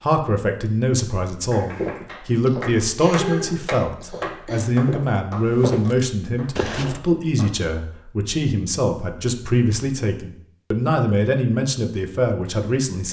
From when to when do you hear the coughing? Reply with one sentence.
The coughing can be heard from 2.0 to 4.7 s.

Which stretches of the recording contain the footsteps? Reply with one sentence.
You can hear the footsteps from 1.6 to 7.0 s.